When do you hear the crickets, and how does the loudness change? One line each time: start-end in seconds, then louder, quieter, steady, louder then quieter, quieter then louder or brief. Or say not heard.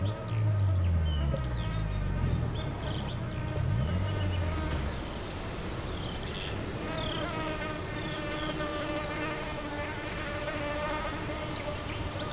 0.0-12.2 louder.